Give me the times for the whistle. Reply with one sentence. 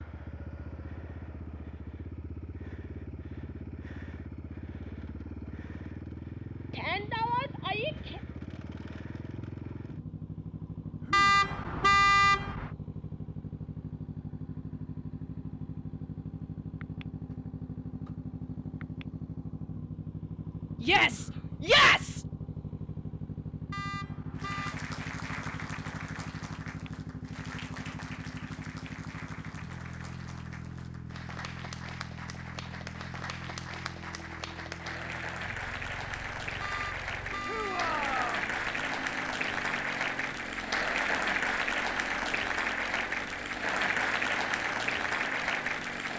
The whistle can't be heard in this clip.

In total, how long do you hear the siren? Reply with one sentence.
The siren can't be heard in this clip.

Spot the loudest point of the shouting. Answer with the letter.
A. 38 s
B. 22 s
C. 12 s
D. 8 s
B.